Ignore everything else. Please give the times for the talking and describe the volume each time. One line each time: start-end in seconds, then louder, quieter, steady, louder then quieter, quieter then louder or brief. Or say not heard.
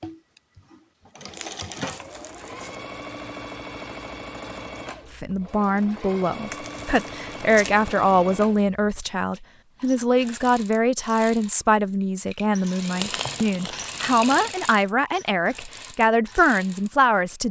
5.2-17.4 steady.